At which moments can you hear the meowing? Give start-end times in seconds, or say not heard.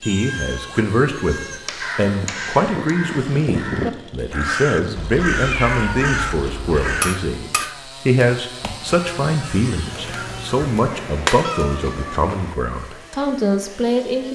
0.0-1.6, 5.0-6.9, 11.4-12.2.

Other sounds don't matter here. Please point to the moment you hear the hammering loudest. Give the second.
11 s.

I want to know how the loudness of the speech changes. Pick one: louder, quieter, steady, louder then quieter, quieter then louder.
steady.